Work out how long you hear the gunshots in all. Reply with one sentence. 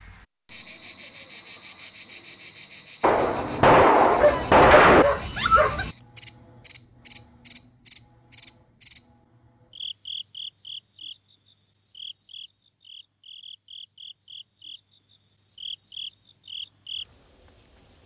You can hear the gunshots for 2 seconds altogether.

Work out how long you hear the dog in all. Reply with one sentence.
The dog can be heard for 2 seconds in total.